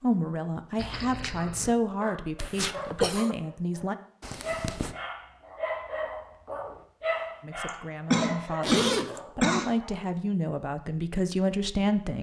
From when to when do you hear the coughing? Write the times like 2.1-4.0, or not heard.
2.4-3.4, 7.7-9.8.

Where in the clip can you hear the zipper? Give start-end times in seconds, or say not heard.
0.8-1.7, 4.2-5.0, 8.6-9.2.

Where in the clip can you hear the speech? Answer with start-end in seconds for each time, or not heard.
0.0-4.0, 7.4-12.1.